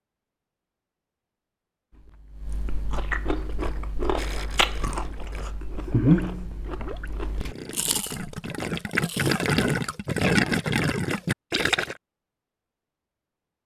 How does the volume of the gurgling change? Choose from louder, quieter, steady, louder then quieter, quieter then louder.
louder.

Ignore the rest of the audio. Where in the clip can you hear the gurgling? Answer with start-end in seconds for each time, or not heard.
3.3-11.9.